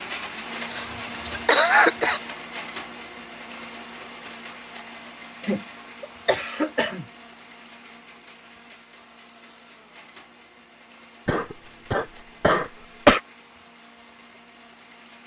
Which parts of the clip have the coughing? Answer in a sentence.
The coughing can be heard from 0.7 to 2.2 s, from 5.4 to 7.0 s and from 11.2 to 13.2 s.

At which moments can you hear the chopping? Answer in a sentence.
The chopping can't be heard in this clip.